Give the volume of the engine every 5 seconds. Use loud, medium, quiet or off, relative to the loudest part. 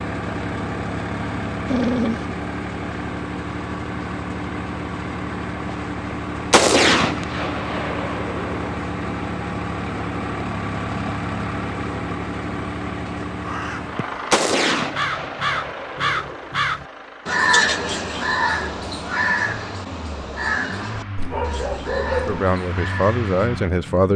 loud, loud, loud, medium, medium.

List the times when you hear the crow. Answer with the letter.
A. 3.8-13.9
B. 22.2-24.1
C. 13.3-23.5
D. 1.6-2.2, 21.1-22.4
C.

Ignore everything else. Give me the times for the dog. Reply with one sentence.
The dog can be heard from 1.6 to 2.2 s and from 21.1 to 22.4 s.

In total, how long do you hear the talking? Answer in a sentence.
You can hear the talking for 2 seconds altogether.